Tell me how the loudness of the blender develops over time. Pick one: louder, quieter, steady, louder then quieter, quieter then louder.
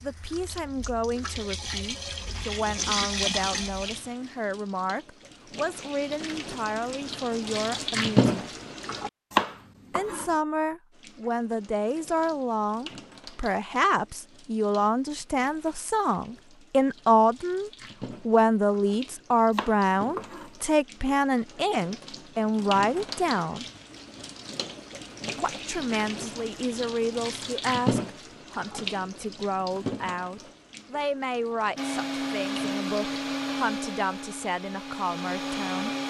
quieter then louder.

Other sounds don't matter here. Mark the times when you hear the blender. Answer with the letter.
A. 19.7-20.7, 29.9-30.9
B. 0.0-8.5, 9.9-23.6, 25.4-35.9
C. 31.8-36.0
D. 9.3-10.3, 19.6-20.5
C.